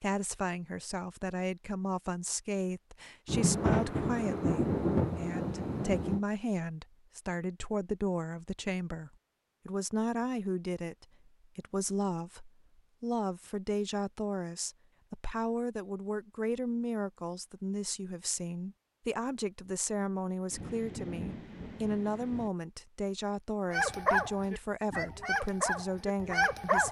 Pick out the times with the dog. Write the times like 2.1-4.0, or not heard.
23.7-26.8.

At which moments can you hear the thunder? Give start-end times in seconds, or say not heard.
3.2-6.2, 20.5-22.5.